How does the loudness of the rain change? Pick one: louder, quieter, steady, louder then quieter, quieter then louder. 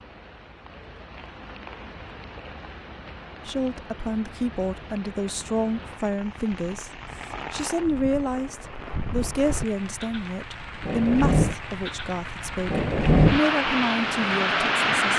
louder.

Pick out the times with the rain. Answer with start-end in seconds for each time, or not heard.
0.0-15.1.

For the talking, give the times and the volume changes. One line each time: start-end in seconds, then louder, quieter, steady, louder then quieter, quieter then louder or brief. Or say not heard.
3.5-15.1 steady.